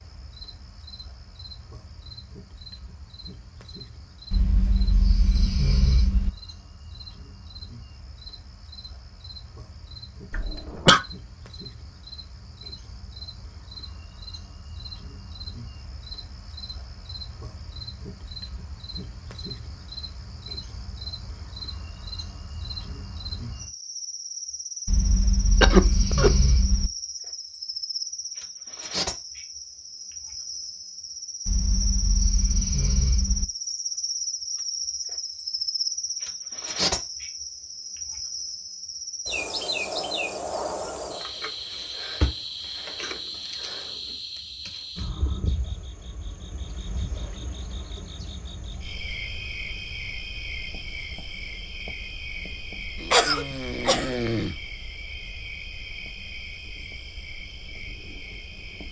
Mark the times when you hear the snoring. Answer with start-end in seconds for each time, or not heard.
4.3-6.3, 24.9-26.9, 31.4-33.5, 53.0-54.6.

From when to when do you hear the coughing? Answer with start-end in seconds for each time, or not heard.
10.3-11.0, 25.6-26.3, 53.1-54.1.